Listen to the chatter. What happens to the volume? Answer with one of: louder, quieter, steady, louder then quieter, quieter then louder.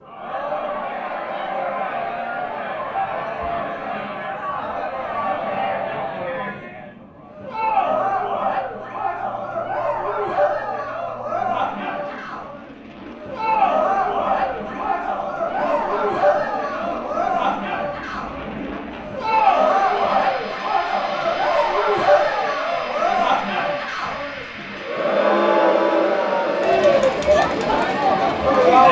louder.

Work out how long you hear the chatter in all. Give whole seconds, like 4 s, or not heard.
29 s.